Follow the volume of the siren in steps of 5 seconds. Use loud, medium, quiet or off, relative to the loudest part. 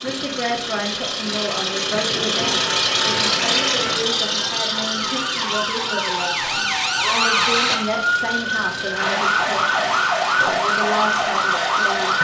quiet, loud, loud.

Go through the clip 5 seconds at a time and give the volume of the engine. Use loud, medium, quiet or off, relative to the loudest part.
loud, medium, medium.